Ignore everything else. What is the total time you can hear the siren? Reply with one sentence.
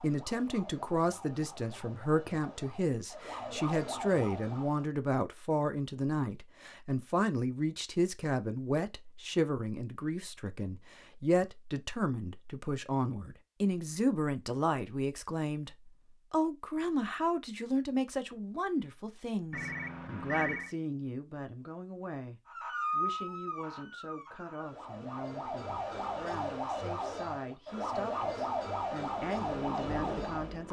You can hear the siren for 13 seconds altogether.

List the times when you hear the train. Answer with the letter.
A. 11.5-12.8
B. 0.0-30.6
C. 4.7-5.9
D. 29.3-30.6
D.